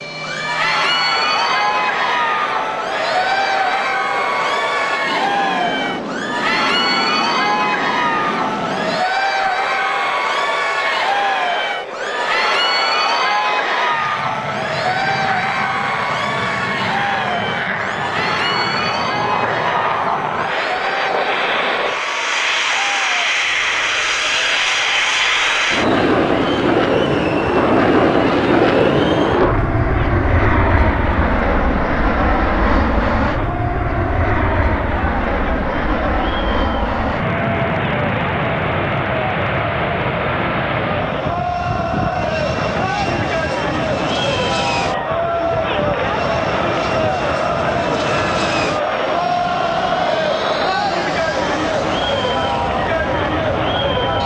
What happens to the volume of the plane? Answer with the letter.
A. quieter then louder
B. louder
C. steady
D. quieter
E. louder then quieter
E.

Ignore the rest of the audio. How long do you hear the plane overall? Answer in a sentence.
You can hear the plane for 54 seconds altogether.